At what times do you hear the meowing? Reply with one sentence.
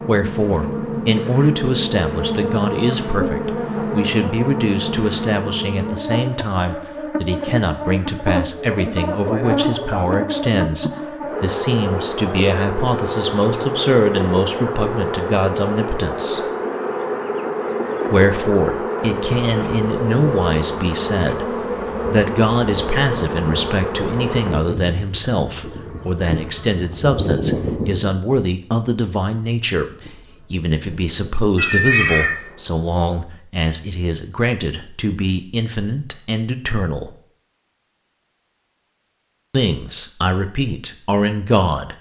The meowing can be heard from 31.6 to 32.4 s.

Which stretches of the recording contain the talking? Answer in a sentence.
The talking can be heard from 0.0 to 16.4 s, from 18.1 to 37.1 s and from 39.5 to 41.9 s.